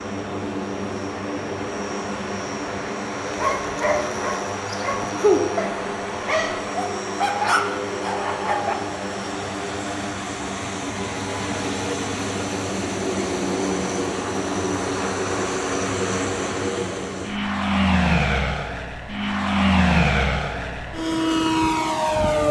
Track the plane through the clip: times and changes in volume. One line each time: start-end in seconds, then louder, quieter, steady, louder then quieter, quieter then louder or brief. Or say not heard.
0.0-22.4 louder.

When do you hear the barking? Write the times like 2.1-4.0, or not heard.
3.2-8.8.